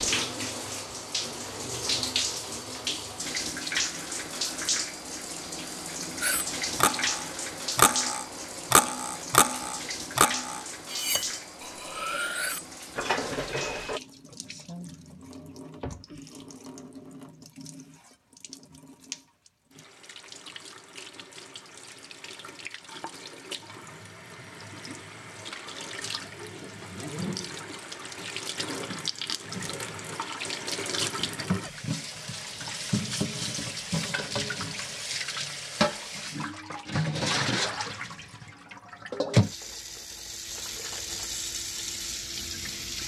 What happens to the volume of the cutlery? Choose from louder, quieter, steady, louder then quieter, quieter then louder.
quieter.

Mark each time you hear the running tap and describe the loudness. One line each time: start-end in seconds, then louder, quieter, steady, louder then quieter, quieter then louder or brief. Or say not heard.
0.0-43.0 quieter then louder.